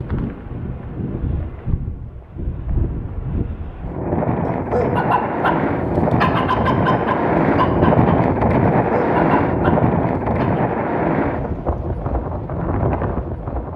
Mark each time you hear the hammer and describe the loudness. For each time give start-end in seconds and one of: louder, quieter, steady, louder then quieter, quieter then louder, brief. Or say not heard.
not heard.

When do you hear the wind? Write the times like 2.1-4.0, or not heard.
0.0-13.7.